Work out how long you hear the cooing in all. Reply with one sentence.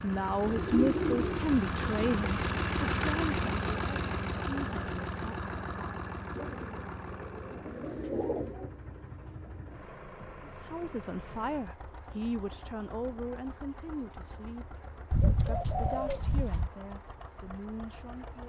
The cooing can be heard for 6 seconds in total.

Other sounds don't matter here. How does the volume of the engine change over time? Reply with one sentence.
The volume of the engine goes down.